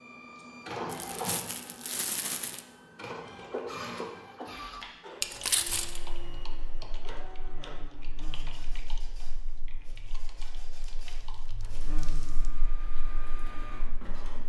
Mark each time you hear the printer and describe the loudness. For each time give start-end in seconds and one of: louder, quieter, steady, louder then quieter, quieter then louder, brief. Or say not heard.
0.0-14.4 quieter then louder.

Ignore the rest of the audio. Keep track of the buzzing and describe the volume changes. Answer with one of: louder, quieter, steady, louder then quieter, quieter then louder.
quieter then louder.